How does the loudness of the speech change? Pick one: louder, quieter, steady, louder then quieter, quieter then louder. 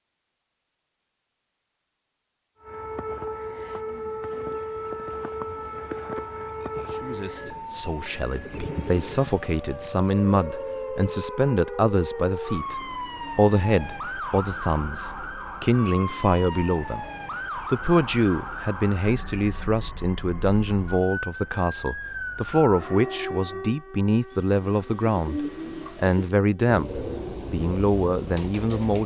steady.